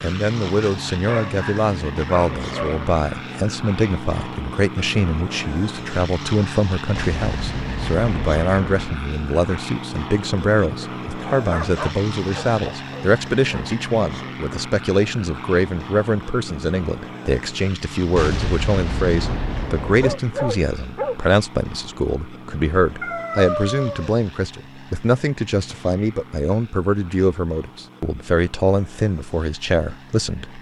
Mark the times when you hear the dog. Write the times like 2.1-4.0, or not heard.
1.1-2.9, 11.3-13.7, 20.0-21.2, 23.0-24.1.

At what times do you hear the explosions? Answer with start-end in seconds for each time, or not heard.
7.0-8.9, 18.1-20.1.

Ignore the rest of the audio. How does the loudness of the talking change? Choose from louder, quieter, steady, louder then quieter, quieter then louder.
steady.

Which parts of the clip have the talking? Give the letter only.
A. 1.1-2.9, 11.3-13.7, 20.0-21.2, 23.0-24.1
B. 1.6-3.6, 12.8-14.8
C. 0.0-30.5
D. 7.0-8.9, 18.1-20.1
C.